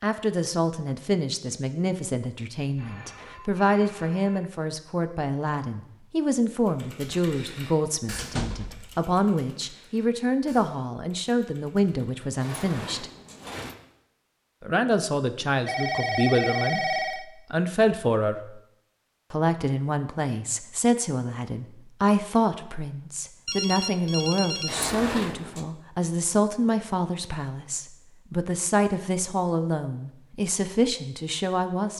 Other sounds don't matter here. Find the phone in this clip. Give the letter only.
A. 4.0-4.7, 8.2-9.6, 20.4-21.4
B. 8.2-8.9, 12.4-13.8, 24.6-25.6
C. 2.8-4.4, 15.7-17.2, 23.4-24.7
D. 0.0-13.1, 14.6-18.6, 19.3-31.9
C.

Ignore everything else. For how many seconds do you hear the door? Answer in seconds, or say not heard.
3 s.